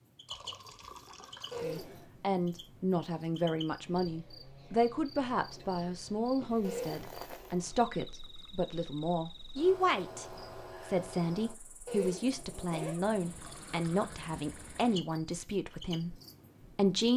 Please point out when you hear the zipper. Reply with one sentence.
You can hear the zipper from 1.5 to 2.0 s, from 6.6 to 7.2 s and from 11.8 to 13.1 s.